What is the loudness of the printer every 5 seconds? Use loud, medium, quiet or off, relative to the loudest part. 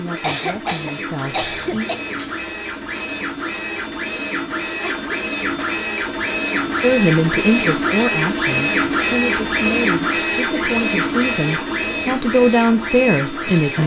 medium, loud, loud.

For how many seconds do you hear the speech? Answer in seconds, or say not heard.
9 s.